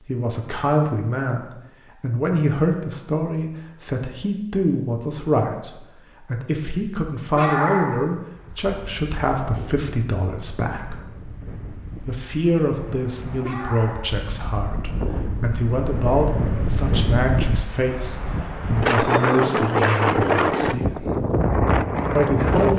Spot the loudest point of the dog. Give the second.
8 s.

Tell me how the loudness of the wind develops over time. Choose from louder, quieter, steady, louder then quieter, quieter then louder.
louder.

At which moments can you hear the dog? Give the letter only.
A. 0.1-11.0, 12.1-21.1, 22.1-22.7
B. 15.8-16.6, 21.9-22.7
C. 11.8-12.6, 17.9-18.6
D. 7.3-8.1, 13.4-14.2
D.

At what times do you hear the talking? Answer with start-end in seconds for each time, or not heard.
0.1-11.0, 12.1-21.1, 22.1-22.7.